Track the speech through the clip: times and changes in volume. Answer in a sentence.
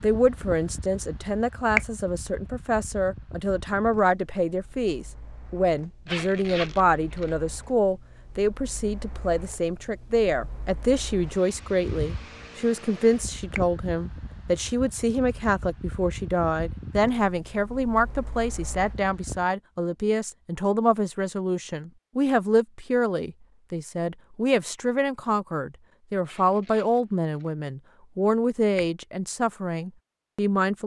The speech can be heard from 0.0 to 30.8 s, at a steady volume.